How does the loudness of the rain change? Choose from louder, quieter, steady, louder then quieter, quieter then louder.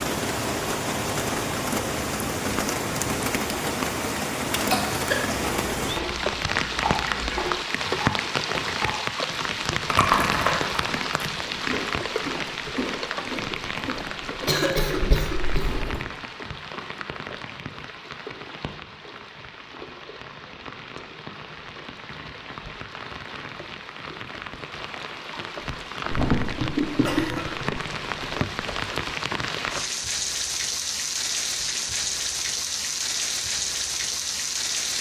quieter then louder.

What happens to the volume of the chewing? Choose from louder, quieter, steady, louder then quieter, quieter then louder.
louder then quieter.